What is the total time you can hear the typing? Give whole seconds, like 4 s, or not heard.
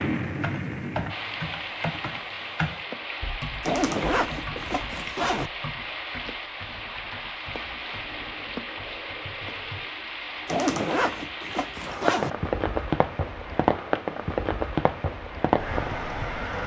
10 s.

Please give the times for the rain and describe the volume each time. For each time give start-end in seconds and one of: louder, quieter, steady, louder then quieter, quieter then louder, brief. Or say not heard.
0.0-16.6 louder.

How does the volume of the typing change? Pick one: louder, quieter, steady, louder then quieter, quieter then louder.
quieter.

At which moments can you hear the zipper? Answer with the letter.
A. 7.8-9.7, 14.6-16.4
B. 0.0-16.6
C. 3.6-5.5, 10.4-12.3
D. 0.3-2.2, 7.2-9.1
C.